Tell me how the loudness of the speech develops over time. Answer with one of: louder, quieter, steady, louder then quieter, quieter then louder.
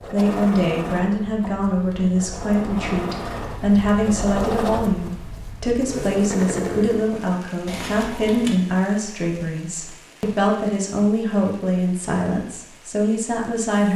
steady.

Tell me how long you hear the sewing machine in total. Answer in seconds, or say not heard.
7 s.